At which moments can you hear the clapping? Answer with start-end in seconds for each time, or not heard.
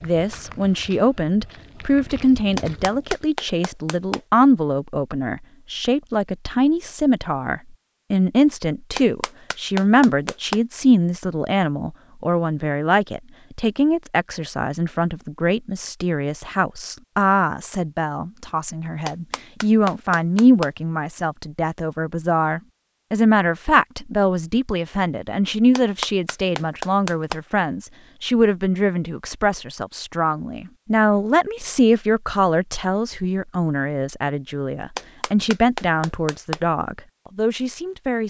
2.5-4.2, 8.9-10.6, 19.1-20.7, 25.8-27.4, 35.0-36.6.